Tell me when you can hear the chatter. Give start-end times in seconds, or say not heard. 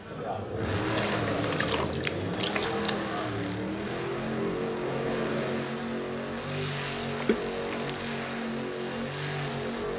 0.0-5.7.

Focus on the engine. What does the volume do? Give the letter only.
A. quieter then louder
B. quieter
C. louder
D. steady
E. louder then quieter
D.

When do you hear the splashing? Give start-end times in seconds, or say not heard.
0.9-2.9, 7.2-8.1.